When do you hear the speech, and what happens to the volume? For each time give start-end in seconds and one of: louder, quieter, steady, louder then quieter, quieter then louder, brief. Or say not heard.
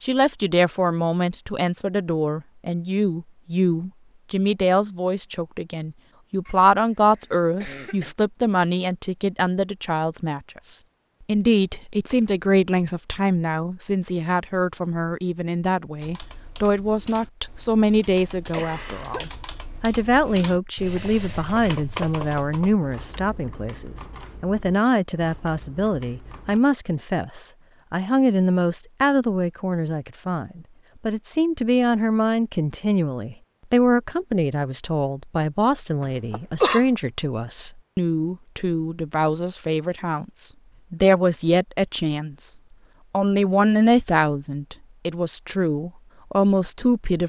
0.0-42.5 steady
43.1-47.2 quieter then louder.